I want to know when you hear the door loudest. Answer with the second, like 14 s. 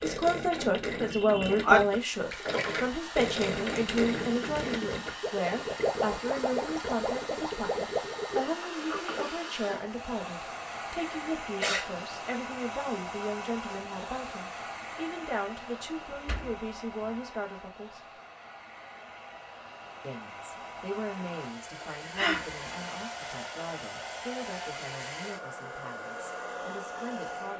9 s.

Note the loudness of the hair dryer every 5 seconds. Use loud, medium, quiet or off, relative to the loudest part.
loud, loud, loud, medium, loud, loud.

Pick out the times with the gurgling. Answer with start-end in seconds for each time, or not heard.
0.0-8.5.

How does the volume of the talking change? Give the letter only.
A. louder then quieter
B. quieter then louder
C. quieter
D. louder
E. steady
C.